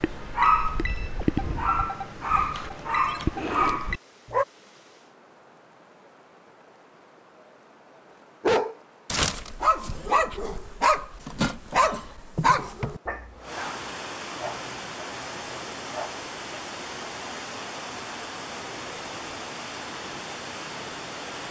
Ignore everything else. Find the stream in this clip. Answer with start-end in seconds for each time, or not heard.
0.0-21.4.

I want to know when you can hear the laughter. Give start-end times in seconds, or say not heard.
not heard.